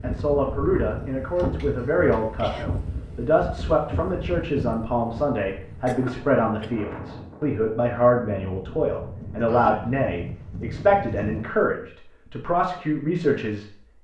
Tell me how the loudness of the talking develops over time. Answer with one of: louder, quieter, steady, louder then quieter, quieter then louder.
steady.